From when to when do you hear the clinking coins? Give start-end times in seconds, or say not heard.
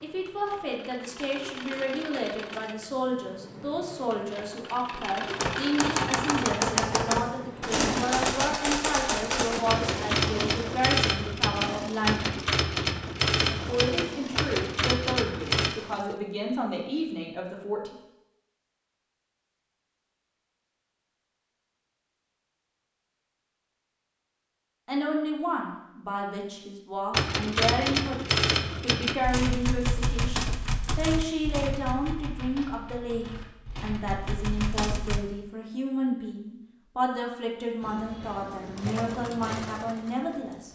not heard.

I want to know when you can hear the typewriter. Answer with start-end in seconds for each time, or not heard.
5.3-15.8, 27.1-35.2.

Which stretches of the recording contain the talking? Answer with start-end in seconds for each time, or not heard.
0.0-12.3, 13.7-17.9, 24.9-40.7.